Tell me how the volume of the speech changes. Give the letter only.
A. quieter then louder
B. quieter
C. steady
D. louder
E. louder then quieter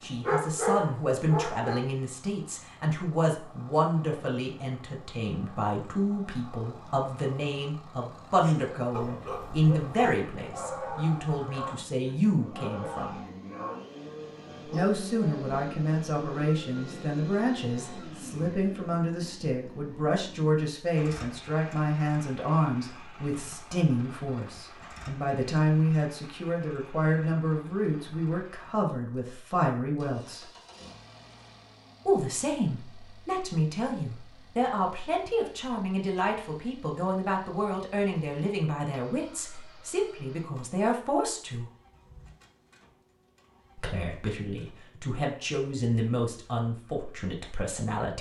C.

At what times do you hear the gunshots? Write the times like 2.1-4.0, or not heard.
not heard.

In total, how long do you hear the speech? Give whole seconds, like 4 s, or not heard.
43 s.